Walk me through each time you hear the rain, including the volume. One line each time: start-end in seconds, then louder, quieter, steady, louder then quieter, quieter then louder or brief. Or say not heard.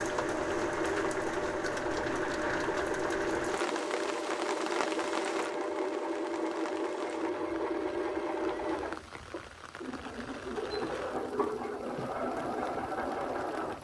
0.0-13.7 quieter.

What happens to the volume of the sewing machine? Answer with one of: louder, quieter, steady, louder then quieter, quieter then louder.
steady.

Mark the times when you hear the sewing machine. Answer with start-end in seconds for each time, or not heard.
0.0-13.7.